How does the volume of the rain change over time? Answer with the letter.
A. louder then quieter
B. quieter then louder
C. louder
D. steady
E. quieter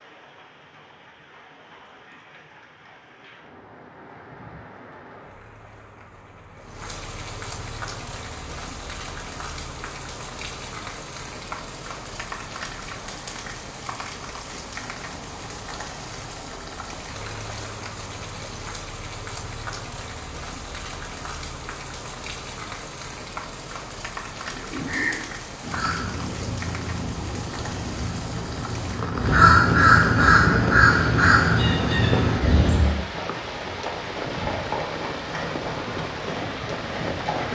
C.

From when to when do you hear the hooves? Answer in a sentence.
The hooves can be heard from 32.1 to 37.5 s.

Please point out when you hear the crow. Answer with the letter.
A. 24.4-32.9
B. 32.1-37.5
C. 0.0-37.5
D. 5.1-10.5
A.